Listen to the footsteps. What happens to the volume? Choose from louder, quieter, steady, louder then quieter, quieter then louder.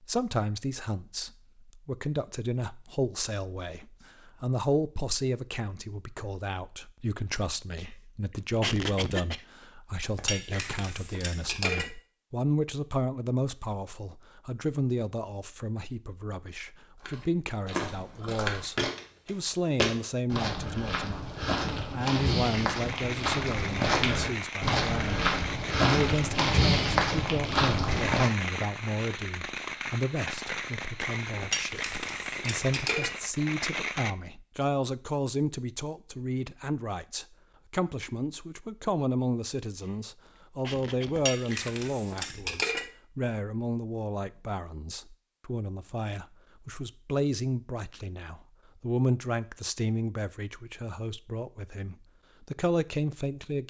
louder.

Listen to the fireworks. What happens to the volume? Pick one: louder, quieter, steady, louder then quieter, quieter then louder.
steady.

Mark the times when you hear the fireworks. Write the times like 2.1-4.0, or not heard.
22.4-34.1.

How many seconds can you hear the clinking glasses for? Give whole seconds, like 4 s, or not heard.
5 s.